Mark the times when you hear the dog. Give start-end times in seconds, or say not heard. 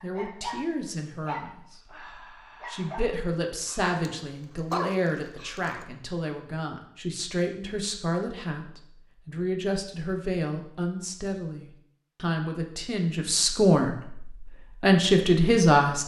0.0-5.8.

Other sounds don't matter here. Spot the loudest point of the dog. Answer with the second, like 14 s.
5 s.